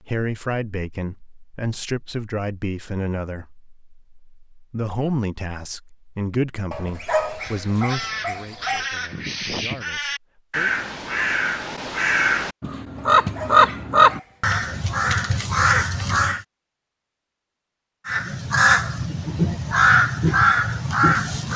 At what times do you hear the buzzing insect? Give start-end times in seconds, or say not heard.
not heard.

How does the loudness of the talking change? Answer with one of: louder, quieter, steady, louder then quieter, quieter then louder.
quieter.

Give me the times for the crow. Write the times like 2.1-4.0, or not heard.
7.3-16.4, 18.1-21.5.